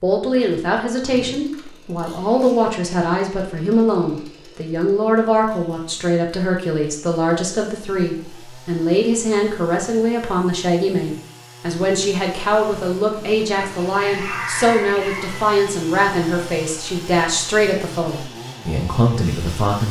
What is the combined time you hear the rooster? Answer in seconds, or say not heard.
2 s.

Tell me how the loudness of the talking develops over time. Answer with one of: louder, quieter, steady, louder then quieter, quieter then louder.
steady.